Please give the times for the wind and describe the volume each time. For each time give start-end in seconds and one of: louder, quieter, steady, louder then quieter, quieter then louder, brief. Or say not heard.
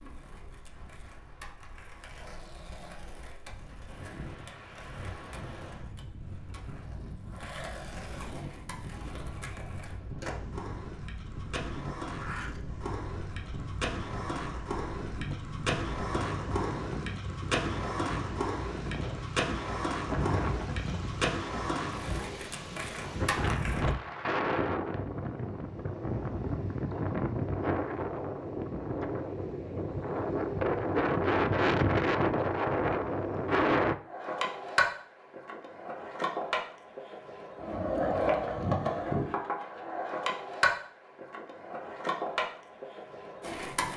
0.0-34.0 louder.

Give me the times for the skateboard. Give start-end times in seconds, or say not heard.
0.0-23.9, 34.0-43.9.